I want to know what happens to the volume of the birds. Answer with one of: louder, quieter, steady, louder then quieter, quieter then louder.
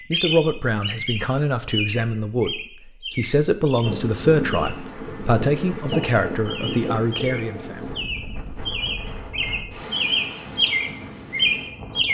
quieter then louder.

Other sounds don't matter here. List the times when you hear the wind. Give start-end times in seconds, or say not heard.
3.8-12.0.